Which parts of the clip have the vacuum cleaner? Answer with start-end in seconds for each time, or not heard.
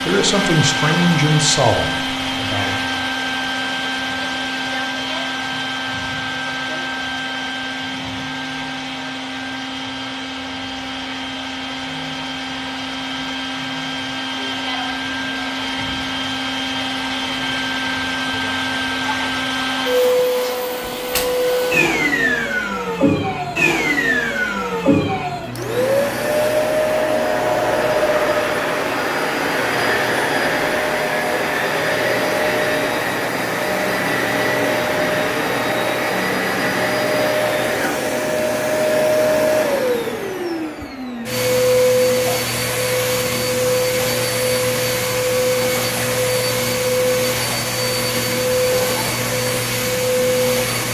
0.0-50.8.